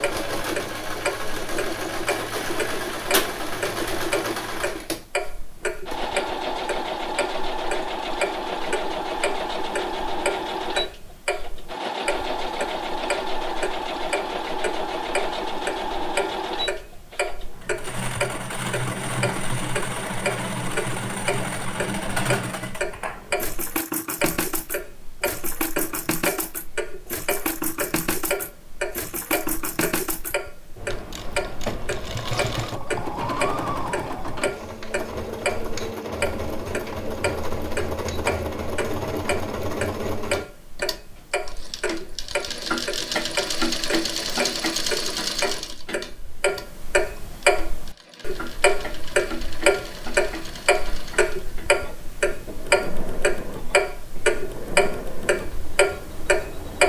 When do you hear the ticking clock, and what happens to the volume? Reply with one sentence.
You can hear the ticking clock from 0.0 to 56.8 s, getting louder.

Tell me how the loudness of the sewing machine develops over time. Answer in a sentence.
The volume of the sewing machine goes down.